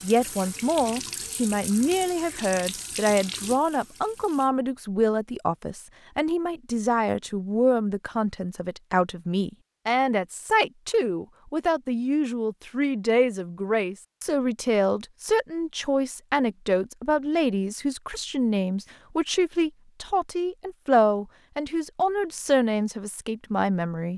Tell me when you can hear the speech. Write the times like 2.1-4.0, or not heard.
0.0-24.1.